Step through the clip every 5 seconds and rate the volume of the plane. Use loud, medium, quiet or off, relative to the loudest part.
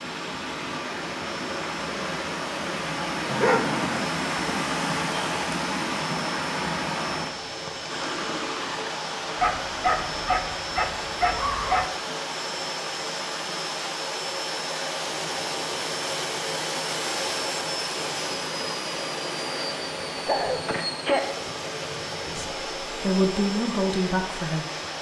medium, medium, loud, loud, loud.